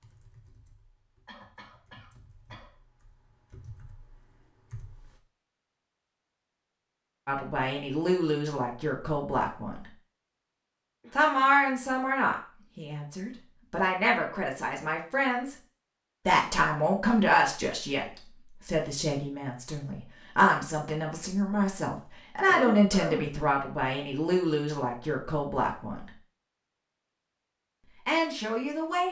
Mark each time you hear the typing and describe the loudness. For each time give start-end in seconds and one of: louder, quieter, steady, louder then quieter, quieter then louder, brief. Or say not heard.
0.0-5.2 louder.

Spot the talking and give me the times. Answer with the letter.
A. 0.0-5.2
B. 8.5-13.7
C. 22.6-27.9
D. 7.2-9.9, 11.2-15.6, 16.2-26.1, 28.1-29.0
D.